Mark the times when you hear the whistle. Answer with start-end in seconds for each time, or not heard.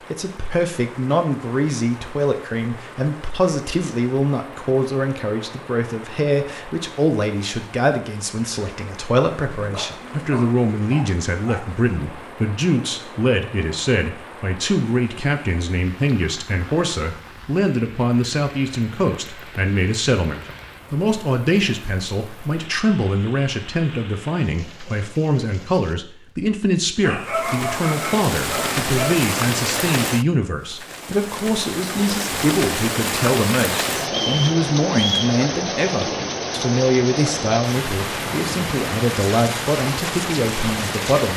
34.0-35.4.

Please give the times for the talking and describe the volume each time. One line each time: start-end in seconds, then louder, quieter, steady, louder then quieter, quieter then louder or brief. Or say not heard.
0.1-41.3 steady.